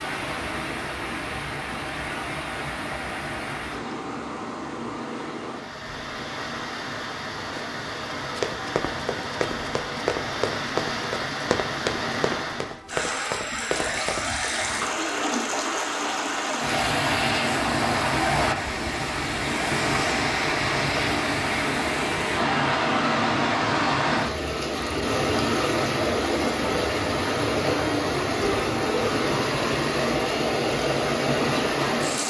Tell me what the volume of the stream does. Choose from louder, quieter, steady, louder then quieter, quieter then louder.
louder.